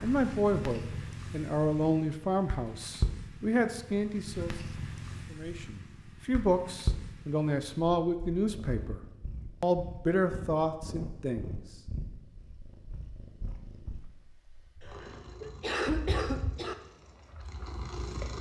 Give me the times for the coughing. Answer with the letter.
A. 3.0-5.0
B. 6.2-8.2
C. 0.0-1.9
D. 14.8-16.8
D.